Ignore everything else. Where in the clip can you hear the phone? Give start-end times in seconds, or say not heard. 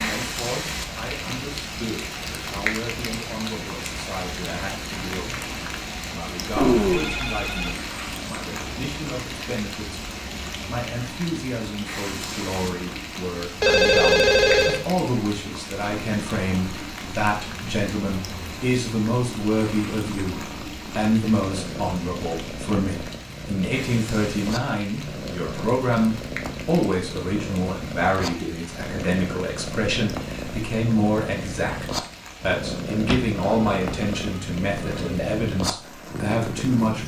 6.5-7.8, 13.6-14.8, 33.0-35.1.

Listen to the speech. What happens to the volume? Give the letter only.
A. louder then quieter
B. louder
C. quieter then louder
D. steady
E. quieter
B.